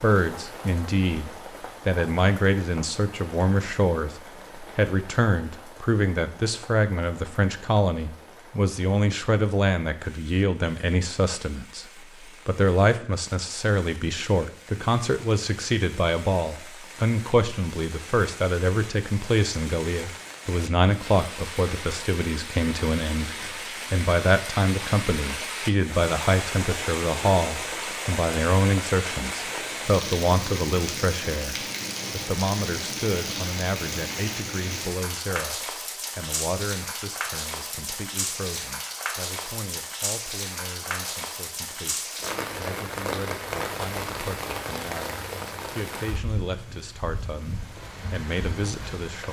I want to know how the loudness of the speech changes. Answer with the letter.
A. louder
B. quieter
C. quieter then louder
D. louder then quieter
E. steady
B.